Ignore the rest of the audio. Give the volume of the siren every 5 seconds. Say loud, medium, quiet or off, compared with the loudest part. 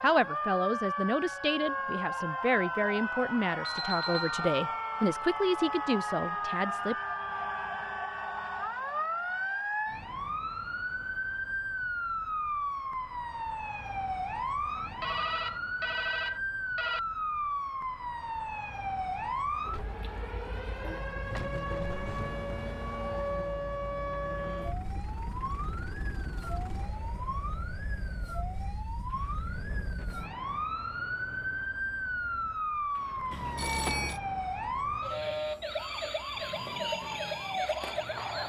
loud, loud, loud, loud, loud, medium, loud, loud.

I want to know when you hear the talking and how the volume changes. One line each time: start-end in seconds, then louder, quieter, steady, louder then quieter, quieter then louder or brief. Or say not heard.
0.0-7.0 steady.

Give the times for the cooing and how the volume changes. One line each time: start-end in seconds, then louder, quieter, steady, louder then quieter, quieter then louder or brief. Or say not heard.
not heard.